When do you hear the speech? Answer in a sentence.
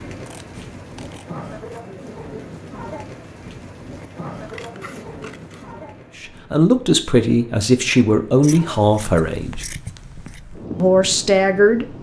You can hear the speech from 6.2 to 9.7 s and from 10.8 to 11.8 s.